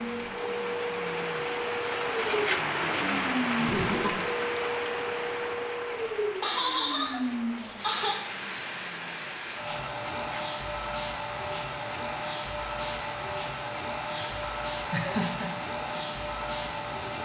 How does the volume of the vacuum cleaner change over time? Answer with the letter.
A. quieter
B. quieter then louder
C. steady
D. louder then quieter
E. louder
C.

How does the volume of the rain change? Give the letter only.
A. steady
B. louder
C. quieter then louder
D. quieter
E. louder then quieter
D.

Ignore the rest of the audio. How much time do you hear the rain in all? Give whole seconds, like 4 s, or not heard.
17 s.